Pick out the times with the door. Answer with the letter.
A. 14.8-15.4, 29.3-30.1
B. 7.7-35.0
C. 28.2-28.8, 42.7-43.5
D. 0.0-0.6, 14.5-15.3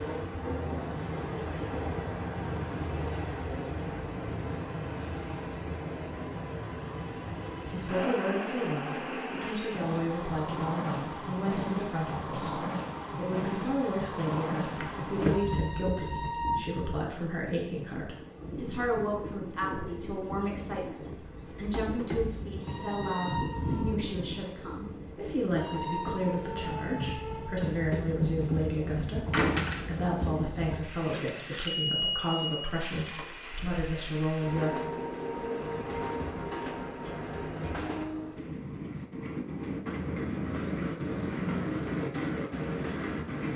A.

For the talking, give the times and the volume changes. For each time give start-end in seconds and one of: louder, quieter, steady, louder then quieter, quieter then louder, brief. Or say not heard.
7.7-35.0 steady.